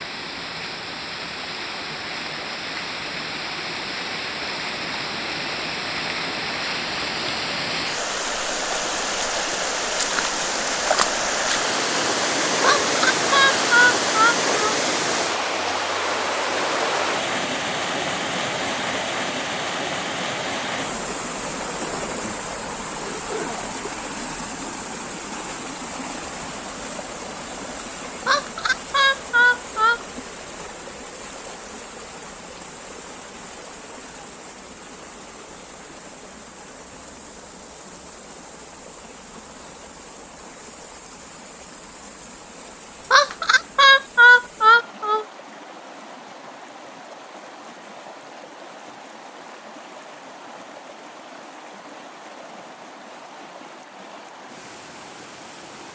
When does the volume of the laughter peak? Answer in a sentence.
The volume of the laughter peaks at 44 seconds.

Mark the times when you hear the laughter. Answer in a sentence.
You can hear the laughter from 12.6 to 14.8 s, from 28.2 to 30.0 s and from 43.1 to 45.2 s.